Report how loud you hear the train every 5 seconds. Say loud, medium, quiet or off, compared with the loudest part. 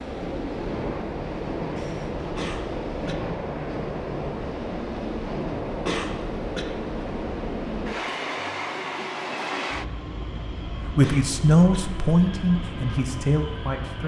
loud, loud, medium.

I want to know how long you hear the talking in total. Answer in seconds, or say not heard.
3 s.